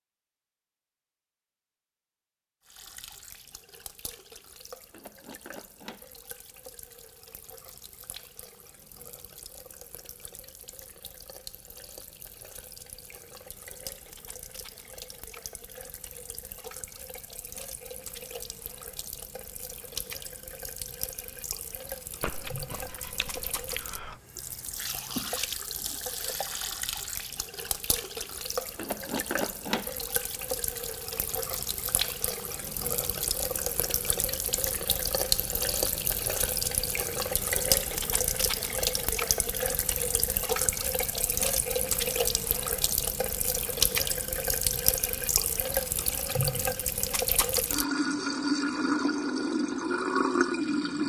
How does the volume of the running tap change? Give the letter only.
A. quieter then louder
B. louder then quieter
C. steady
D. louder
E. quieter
D.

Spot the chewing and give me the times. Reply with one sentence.
You can hear the chewing from 22.2 to 24.1 s.